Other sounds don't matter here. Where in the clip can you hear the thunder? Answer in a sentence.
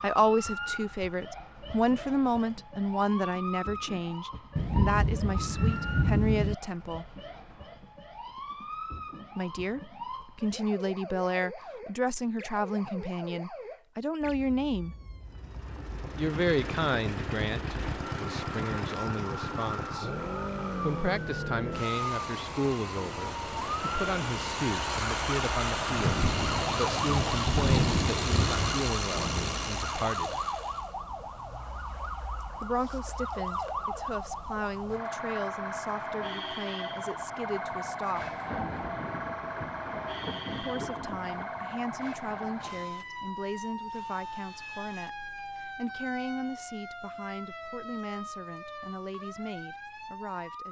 The thunder can be heard from 4.5 to 6.5 s, from 25.8 to 30.3 s and from 38.1 to 41.5 s.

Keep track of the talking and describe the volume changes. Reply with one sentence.
The volume of the talking goes down.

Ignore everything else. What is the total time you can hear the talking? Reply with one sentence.
You can hear the talking for 42 seconds altogether.